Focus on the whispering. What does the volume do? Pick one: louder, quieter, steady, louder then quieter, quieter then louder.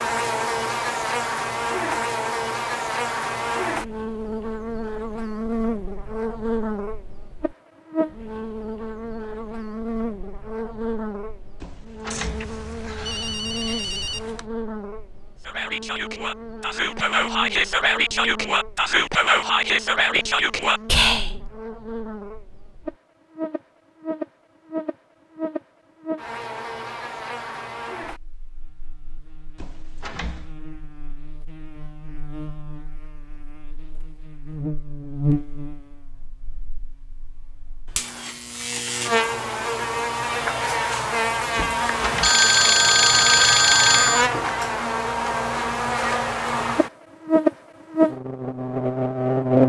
louder.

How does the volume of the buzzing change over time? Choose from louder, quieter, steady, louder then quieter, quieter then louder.
quieter then louder.